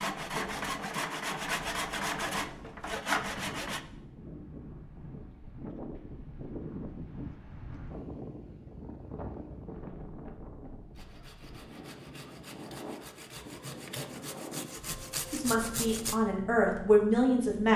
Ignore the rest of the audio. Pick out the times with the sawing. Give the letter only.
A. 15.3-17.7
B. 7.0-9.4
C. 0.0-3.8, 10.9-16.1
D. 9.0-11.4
C.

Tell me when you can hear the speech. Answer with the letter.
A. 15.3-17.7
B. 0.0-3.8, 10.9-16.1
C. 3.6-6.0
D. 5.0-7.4
A.